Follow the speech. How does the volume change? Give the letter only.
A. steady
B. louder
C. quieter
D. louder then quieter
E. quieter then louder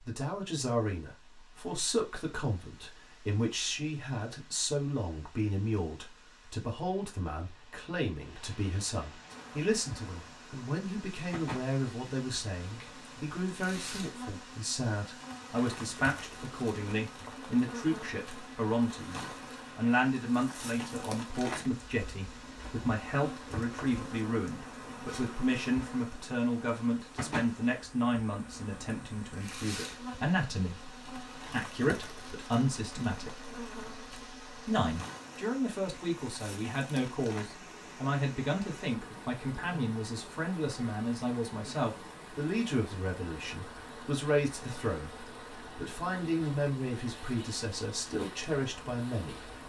A.